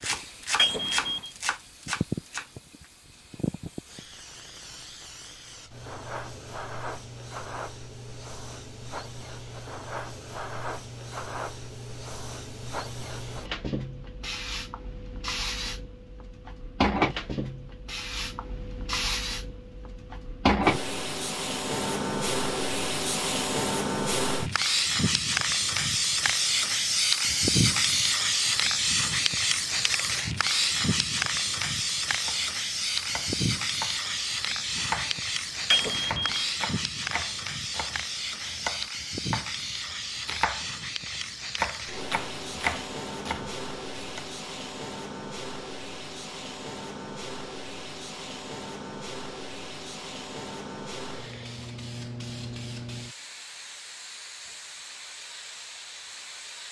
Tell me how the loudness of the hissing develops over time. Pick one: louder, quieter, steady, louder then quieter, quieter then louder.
louder then quieter.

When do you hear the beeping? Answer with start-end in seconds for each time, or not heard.
0.6-1.3, 35.7-36.5.